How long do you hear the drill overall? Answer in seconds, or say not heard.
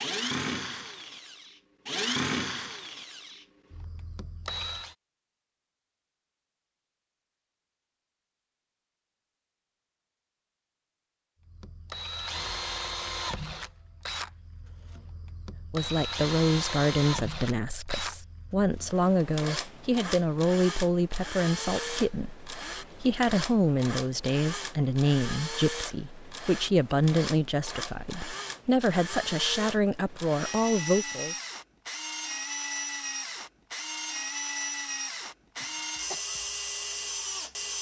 31 s.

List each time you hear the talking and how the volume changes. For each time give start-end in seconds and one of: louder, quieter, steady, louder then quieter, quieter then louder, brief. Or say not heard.
15.7-31.4 steady.